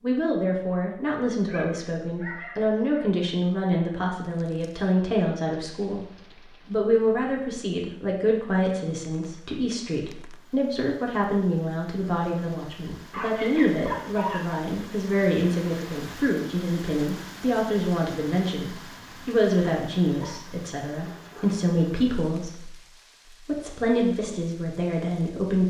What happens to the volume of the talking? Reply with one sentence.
The loudness of the talking stays about the same.